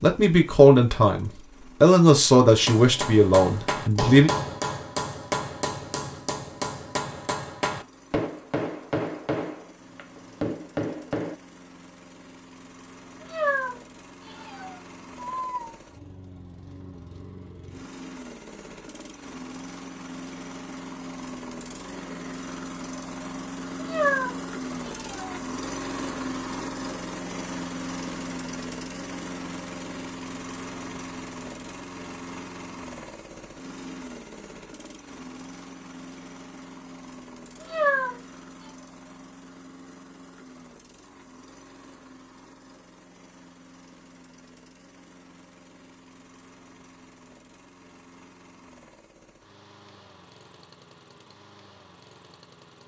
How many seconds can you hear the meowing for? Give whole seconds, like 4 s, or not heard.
5 s.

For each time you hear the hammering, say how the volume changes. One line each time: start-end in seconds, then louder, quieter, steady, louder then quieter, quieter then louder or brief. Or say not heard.
2.5-11.3 steady.